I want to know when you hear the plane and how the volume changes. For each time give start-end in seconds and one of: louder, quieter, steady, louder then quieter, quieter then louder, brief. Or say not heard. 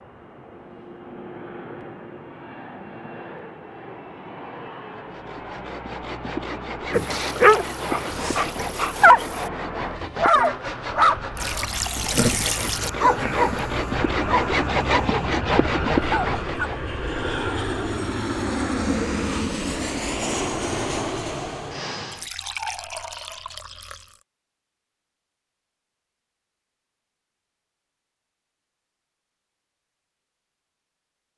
0.0-22.2 louder.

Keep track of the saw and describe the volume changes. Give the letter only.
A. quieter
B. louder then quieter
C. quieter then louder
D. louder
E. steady
D.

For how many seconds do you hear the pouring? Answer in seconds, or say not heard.
5 s.